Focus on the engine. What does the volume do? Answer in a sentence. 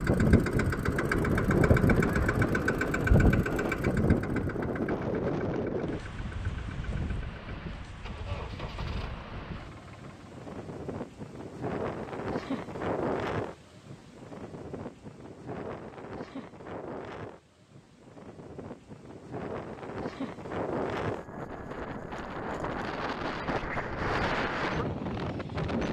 The loudness of the engine goes down.